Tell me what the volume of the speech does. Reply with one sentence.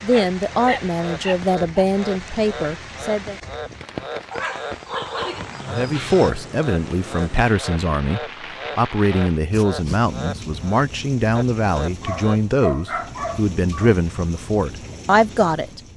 The volume of the speech stays about the same.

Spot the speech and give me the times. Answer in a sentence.
You can hear the speech from 0.0 to 3.4 s and from 5.7 to 15.8 s.